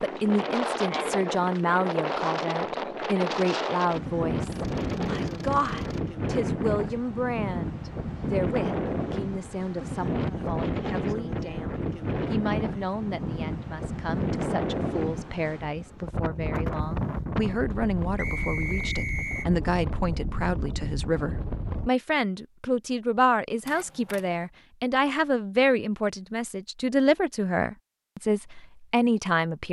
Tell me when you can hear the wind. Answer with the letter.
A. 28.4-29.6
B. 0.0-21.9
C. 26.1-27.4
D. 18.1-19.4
B.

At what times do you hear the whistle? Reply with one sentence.
The whistle can be heard from 18.1 to 19.4 s.